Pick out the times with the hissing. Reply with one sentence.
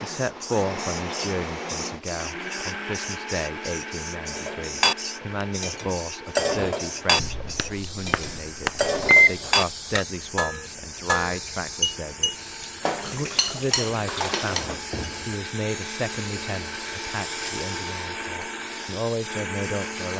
You can hear the hissing from 0.0 to 20.1 s.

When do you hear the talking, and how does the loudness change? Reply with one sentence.
The talking can be heard from 0.0 to 20.1 s, at a steady volume.